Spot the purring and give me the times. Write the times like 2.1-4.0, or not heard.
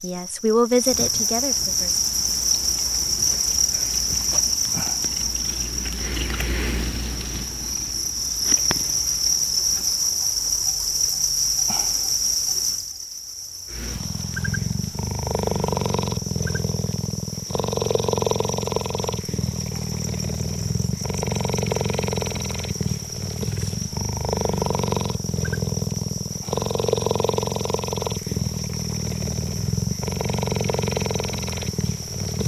1.7-10.0, 13.7-32.4.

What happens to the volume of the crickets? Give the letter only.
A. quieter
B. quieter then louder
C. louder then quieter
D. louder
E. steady
A.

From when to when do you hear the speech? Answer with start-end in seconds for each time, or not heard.
0.0-2.0.